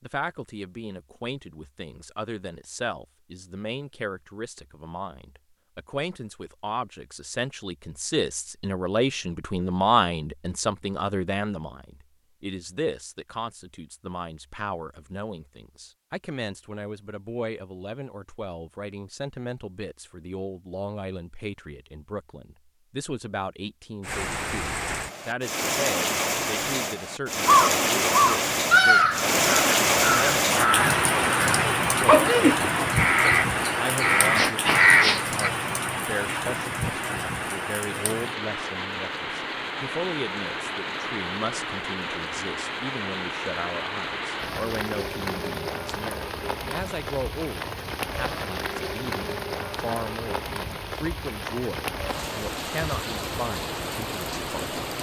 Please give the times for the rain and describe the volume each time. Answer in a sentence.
The rain can be heard from 24.0 to 54.9 s, getting quieter.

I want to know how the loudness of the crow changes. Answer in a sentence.
The volume of the crow goes down, then up.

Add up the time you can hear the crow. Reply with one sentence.
You can hear the crow for 8 seconds altogether.